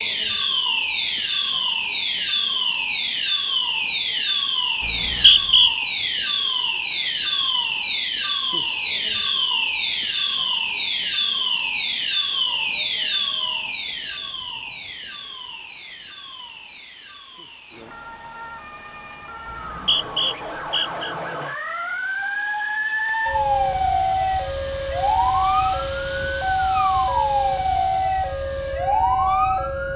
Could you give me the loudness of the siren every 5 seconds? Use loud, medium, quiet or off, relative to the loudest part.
loud, loud, loud, quiet, loud, loud.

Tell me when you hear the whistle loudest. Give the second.
5 s.